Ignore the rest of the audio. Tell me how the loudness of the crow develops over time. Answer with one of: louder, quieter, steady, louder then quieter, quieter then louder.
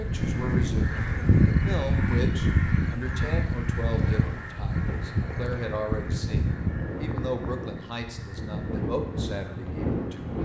quieter.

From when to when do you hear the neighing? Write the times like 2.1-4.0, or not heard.
not heard.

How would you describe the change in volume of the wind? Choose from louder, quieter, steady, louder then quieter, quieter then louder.
quieter then louder.